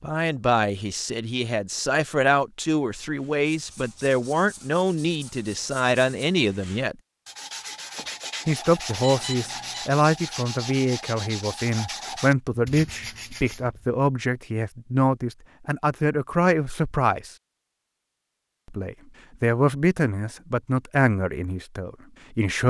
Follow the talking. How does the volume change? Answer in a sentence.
The loudness of the talking stays about the same.